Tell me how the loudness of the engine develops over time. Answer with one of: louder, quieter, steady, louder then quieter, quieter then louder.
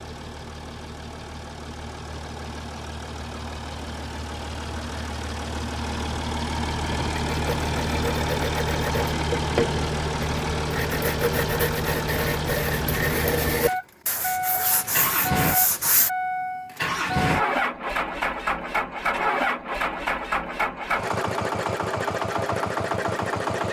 louder.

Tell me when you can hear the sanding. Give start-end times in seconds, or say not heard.
6.8-16.1.